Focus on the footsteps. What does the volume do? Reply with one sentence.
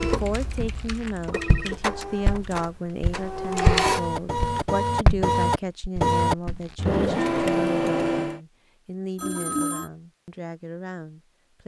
The loudness of the footsteps goes up, then down.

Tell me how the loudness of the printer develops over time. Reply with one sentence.
The loudness of the printer goes up.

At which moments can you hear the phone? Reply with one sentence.
The phone can be heard from 1.3 to 1.8 s and from 9.2 to 9.9 s.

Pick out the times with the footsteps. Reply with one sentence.
You can hear the footsteps from 0.6 to 6.6 s.